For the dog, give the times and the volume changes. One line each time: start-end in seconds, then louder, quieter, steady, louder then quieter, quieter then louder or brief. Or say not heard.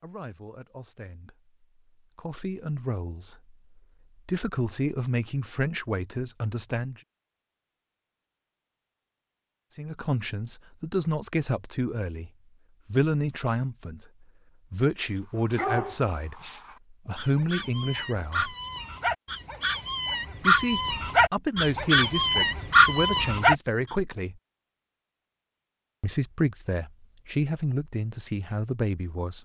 15.3-23.6 louder.